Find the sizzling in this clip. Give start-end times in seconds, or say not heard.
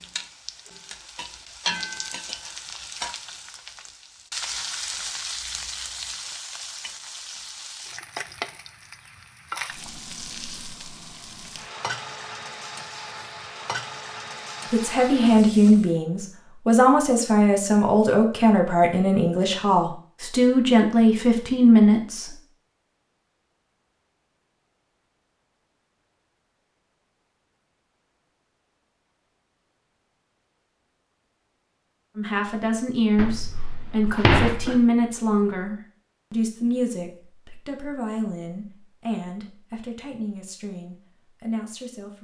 0.0-15.9.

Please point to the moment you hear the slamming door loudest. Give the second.
34 s.